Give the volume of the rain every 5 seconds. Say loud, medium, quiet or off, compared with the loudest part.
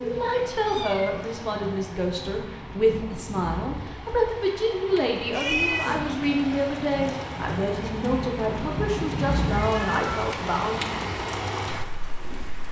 medium, loud, loud.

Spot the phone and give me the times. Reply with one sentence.
The phone can't be heard in this clip.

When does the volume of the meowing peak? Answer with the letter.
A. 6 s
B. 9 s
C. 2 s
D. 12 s
A.